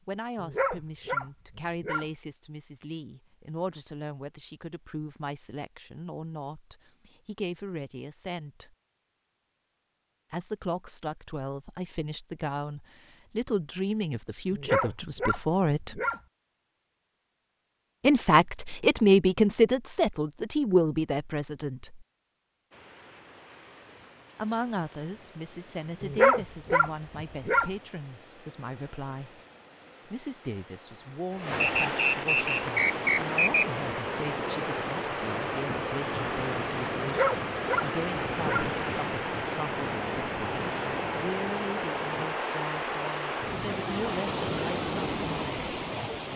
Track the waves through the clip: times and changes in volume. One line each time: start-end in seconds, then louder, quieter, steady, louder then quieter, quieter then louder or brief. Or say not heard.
22.7-46.3 louder.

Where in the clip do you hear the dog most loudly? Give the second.
26 s.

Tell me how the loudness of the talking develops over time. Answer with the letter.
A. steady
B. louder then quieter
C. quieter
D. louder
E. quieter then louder
B.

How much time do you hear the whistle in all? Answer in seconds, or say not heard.
2 s.